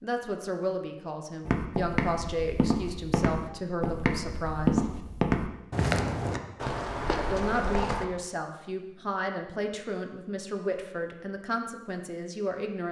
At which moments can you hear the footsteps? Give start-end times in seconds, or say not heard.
1.4-8.1.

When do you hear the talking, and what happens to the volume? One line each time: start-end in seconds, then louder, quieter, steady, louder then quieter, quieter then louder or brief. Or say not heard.
0.0-4.8 steady
7.3-12.8 steady.